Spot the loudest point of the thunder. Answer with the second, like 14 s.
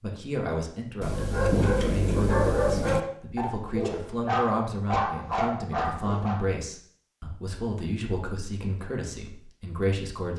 2 s.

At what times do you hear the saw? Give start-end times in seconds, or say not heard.
not heard.